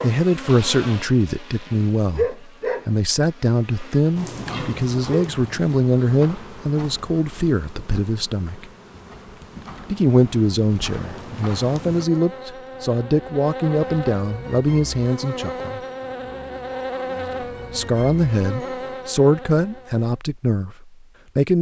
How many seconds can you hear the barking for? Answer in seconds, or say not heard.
not heard.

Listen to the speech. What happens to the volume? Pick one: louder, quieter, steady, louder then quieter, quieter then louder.
steady.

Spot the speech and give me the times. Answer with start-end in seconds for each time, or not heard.
0.0-8.7, 9.8-15.8, 17.7-21.5.